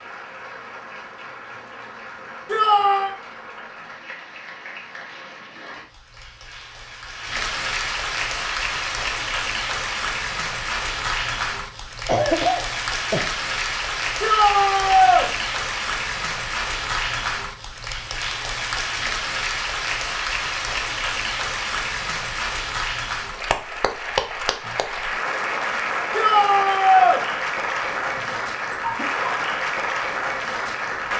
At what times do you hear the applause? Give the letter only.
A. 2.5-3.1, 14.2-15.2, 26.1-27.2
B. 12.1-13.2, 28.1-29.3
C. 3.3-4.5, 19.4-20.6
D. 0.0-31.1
D.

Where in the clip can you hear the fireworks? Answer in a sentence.
You can't hear the fireworks here.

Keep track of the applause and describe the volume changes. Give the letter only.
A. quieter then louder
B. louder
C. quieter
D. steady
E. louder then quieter
B.